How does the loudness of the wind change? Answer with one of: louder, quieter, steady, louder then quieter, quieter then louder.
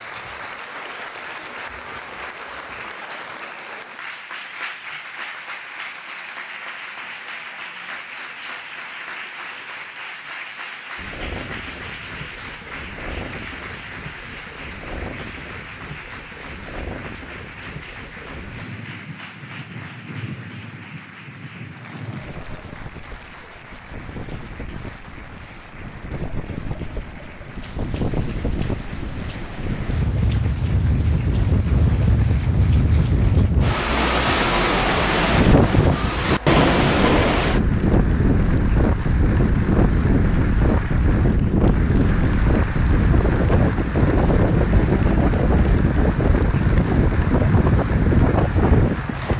louder.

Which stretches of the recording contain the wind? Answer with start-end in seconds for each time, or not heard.
10.9-49.3.